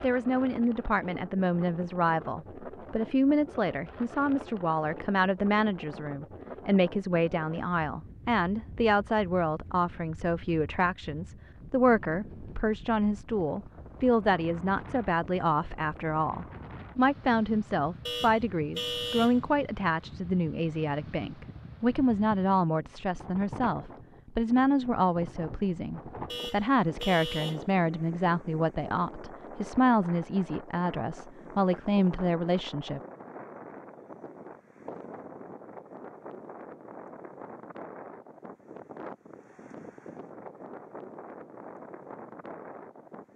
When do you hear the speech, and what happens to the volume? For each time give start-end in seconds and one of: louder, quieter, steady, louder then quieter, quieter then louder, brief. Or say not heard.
0.0-33.0 steady.